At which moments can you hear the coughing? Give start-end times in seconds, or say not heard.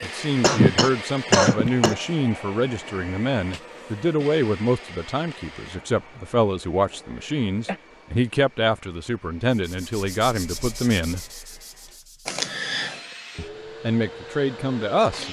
0.4-1.9, 6.8-7.8, 12.2-12.9.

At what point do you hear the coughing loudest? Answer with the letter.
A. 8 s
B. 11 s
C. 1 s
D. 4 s
C.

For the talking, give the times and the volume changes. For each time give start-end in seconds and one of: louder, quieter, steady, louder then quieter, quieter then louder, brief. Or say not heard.
0.0-11.2 steady
13.3-15.2 brief.